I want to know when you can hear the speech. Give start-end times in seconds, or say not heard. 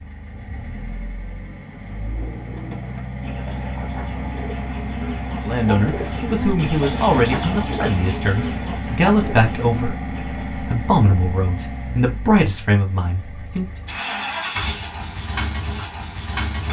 5.4-13.7.